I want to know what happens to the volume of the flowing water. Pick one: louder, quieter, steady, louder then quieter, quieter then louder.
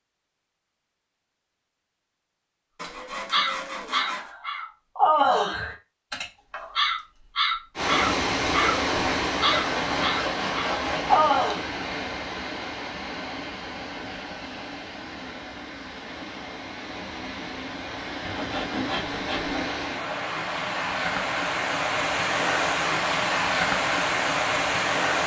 quieter then louder.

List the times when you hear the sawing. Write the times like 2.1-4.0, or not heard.
2.8-4.3, 9.4-11.3, 18.2-19.8.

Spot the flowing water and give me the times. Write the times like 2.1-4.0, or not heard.
7.8-25.2.